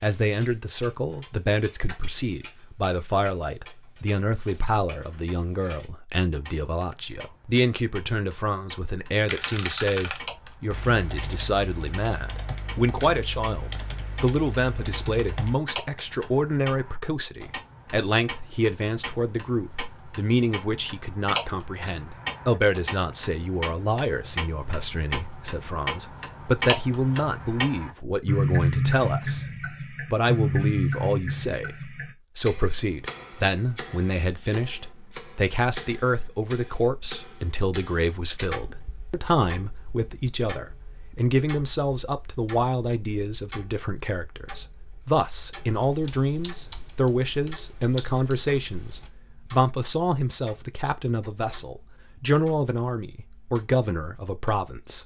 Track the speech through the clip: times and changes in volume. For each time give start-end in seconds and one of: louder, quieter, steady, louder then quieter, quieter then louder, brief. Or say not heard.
0.0-55.0 steady.